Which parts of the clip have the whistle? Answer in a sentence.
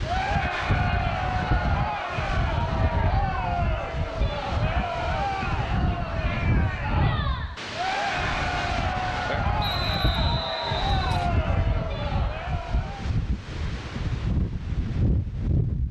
You can hear the whistle from 9.6 to 11.3 s.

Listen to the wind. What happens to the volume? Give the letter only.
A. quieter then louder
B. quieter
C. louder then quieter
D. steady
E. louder
D.